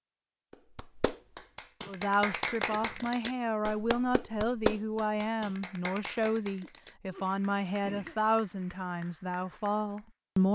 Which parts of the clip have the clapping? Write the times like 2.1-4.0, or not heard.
0.5-10.1.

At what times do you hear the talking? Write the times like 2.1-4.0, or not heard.
1.9-10.4.